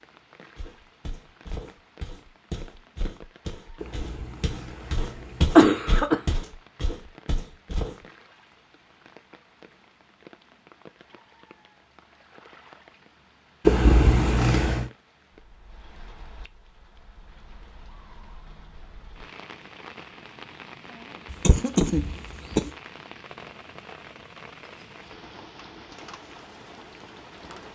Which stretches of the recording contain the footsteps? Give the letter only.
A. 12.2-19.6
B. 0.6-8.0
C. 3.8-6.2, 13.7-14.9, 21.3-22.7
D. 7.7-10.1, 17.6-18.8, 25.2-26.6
B.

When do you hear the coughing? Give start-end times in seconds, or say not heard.
3.8-6.2, 13.7-14.9, 21.3-22.7.